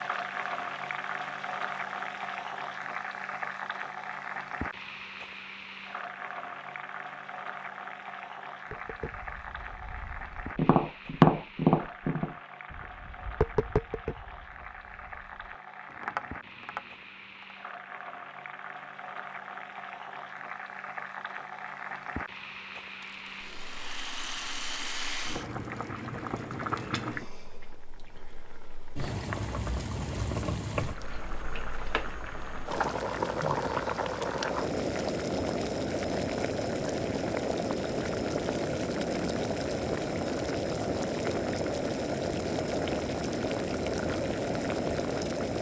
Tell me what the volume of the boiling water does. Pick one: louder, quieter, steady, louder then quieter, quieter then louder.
quieter then louder.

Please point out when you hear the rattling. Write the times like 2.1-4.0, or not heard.
23.0-25.5.